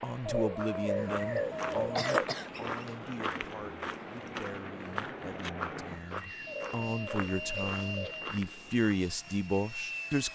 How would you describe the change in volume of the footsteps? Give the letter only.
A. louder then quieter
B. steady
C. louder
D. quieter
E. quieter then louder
D.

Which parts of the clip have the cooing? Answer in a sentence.
The cooing can be heard from 0.2 to 2.2 s and from 6.5 to 8.2 s.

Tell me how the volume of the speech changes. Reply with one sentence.
The loudness of the speech goes down, then up.